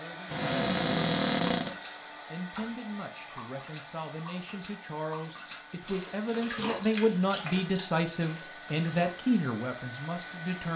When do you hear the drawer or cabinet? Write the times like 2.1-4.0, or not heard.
0.3-1.8.